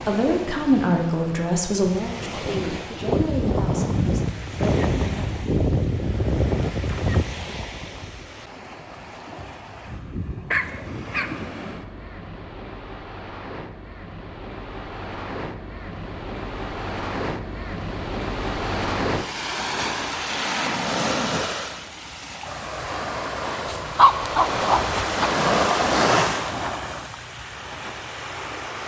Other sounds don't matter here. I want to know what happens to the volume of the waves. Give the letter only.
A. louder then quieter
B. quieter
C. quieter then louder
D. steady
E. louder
C.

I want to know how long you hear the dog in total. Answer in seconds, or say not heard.
4 s.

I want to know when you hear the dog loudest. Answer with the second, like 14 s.
24 s.